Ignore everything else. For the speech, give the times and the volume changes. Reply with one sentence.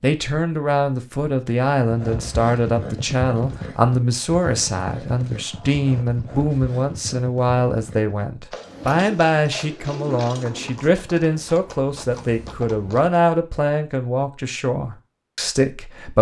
You can hear the speech from 0.0 to 16.1 s, at a steady volume.